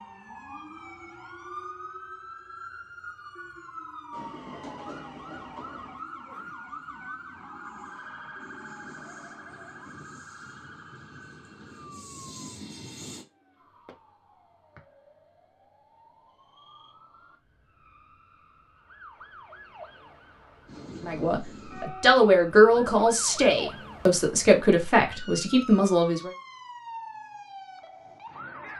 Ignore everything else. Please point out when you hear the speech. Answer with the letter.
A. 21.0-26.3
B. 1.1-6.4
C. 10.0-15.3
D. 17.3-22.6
A.